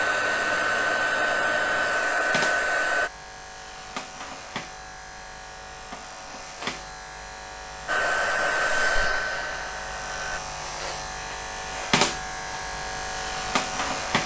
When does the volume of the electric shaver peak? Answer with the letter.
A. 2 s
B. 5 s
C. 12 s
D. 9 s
C.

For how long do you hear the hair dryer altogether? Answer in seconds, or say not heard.
6 s.